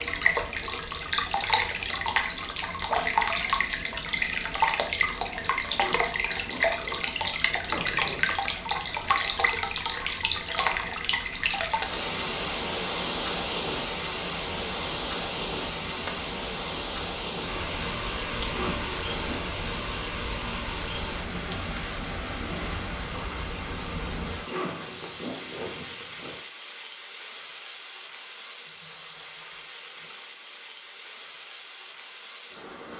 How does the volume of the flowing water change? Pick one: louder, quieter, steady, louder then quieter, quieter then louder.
quieter.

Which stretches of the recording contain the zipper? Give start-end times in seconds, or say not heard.
5.7-8.3, 18.4-19.6, 24.4-26.4.